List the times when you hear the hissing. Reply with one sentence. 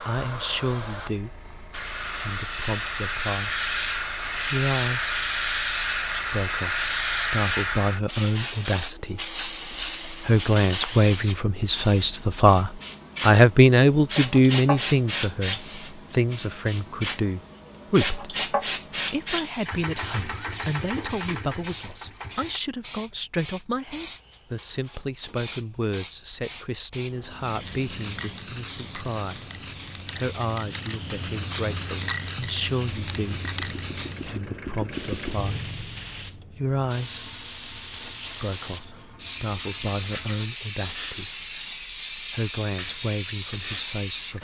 The hissing can be heard from 0.0 to 44.3 s.